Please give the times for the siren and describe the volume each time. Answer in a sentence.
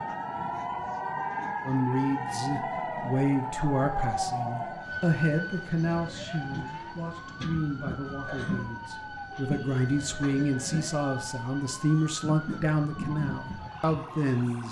The siren can be heard from 0.0 to 14.6 s, getting quieter.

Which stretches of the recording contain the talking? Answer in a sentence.
The talking can be heard from 1.6 to 14.6 s.